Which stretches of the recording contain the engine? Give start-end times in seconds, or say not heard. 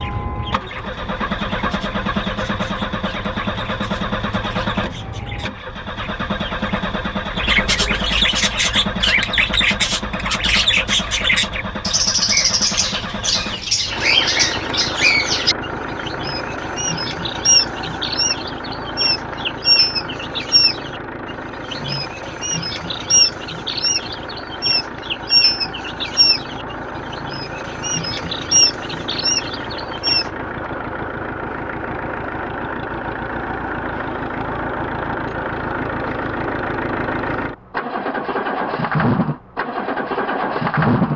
0.0-41.1.